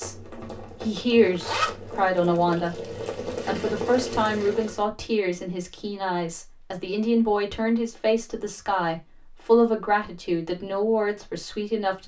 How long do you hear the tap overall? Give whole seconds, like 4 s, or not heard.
5 s.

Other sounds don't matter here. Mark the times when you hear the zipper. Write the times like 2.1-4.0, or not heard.
0.8-2.4.